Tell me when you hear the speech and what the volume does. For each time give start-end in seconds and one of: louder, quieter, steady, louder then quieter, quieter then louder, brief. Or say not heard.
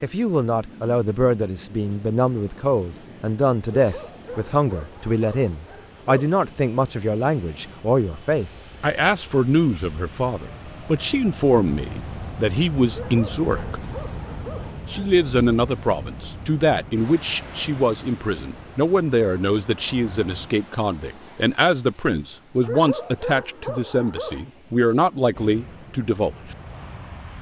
0.0-13.8 steady
14.9-26.4 steady.